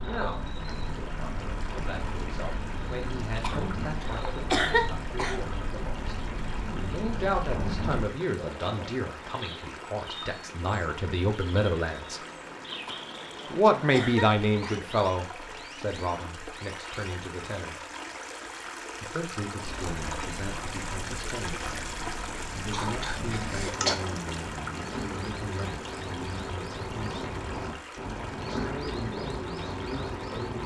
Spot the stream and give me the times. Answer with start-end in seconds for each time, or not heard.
0.1-30.6.